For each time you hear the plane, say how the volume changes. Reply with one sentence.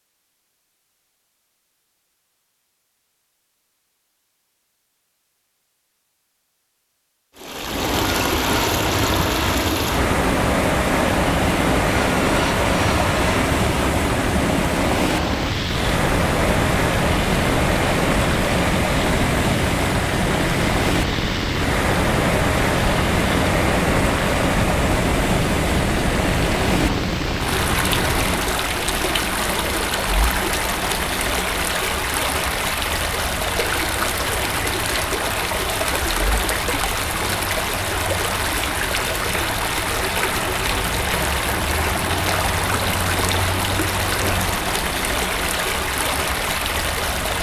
You can hear the plane from 7.7 to 28.6 s, at a steady volume.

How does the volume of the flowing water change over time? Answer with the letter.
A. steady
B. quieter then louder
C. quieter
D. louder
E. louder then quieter
A.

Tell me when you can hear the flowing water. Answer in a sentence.
The flowing water can be heard from 7.3 to 47.3 s.